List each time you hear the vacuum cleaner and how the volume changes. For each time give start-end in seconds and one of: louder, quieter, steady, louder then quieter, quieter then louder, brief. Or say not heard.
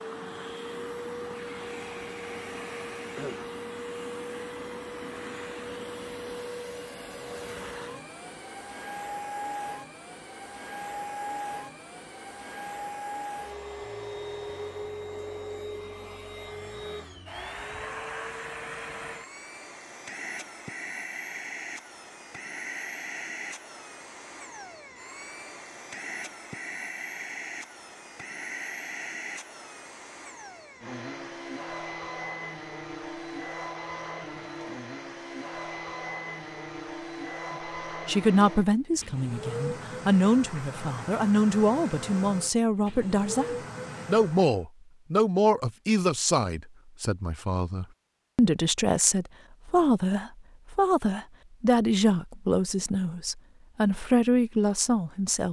0.0-44.6 steady.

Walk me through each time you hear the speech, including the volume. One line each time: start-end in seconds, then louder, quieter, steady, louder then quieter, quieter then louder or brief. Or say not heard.
38.0-55.4 steady.